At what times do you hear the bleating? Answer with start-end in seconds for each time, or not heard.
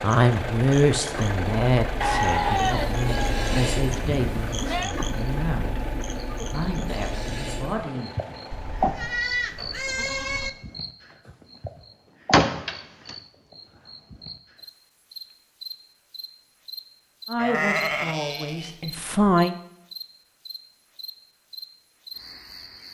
2.0-5.0, 8.5-10.5, 17.4-18.8.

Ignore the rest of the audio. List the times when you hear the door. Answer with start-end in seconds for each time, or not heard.
12.3-13.1.